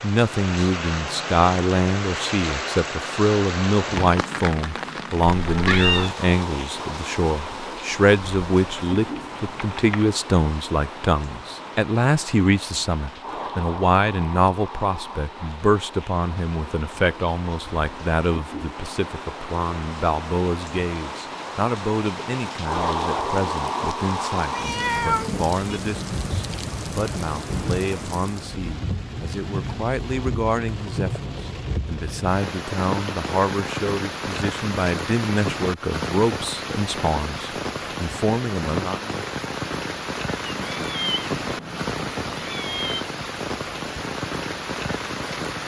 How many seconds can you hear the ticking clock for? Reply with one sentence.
The ticking clock can't be heard in this clip.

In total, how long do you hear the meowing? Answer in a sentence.
You can hear the meowing for 5 seconds altogether.